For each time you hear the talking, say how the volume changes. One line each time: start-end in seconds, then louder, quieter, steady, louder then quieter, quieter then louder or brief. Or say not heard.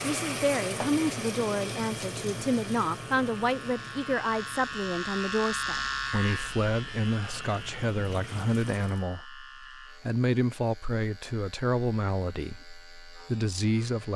0.0-14.1 steady.